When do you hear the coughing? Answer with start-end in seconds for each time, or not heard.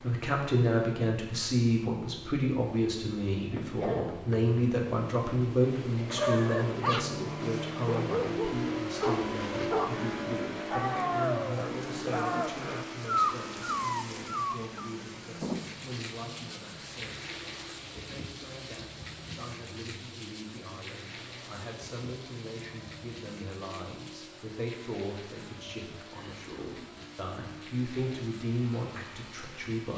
3.5-4.4, 12.1-12.9, 26.1-27.0.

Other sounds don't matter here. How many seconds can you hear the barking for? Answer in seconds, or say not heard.
9 s.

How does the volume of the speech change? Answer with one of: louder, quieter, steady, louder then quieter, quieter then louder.
quieter then louder.